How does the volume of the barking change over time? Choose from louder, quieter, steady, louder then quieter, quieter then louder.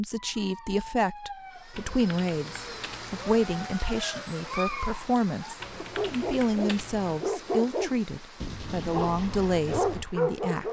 louder.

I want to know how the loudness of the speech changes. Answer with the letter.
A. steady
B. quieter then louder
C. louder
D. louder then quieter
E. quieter
A.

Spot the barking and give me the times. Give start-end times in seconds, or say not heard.
0.1-10.6.